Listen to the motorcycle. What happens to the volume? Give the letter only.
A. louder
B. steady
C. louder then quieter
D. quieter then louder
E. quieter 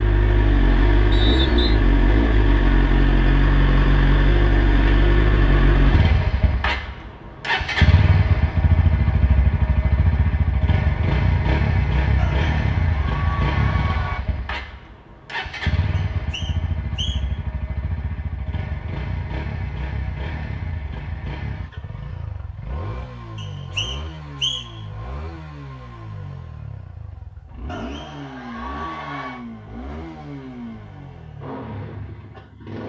E.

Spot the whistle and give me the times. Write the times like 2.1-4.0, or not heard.
1.1-1.8, 15.9-17.4, 23.4-24.8.